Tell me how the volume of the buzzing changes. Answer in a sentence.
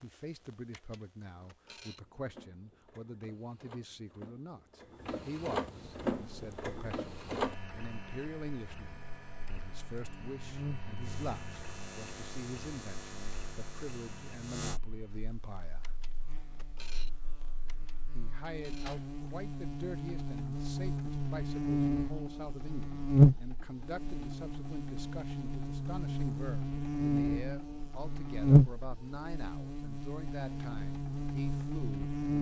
The volume of the buzzing goes up.